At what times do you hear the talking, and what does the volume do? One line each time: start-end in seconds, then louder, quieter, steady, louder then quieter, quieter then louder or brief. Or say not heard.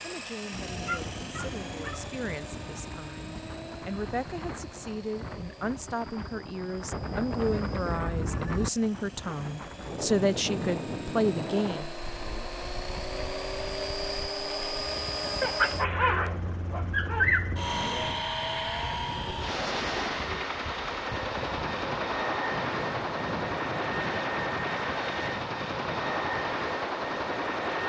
0.0-11.9 louder.